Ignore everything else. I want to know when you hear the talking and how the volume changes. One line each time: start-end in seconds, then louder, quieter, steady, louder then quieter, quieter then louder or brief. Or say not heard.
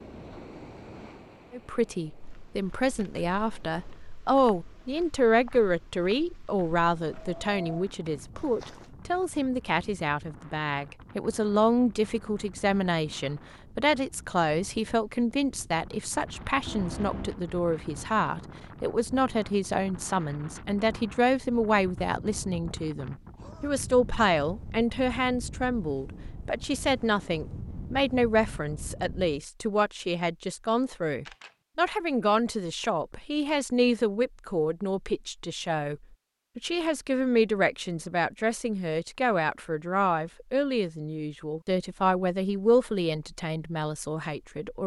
1.5-44.8 steady.